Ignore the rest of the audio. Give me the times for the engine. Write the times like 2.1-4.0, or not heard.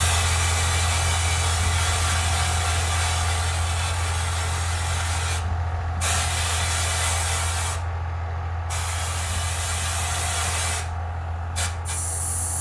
0.0-12.5.